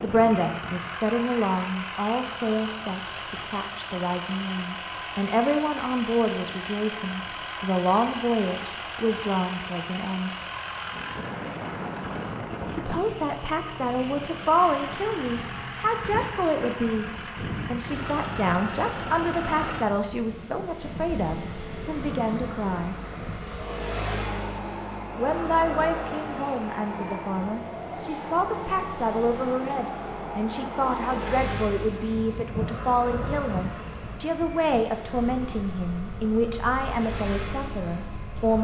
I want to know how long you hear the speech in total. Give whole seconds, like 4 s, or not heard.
34 s.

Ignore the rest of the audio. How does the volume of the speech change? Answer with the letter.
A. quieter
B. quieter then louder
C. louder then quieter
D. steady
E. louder
D.